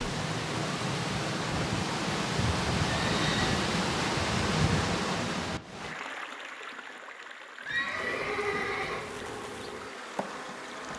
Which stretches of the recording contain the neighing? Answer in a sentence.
The neighing can be heard from 3.0 to 3.5 s and from 7.7 to 9.3 s.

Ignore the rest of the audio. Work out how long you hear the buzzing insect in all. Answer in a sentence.
The buzzing insect can be heard for 3 seconds in total.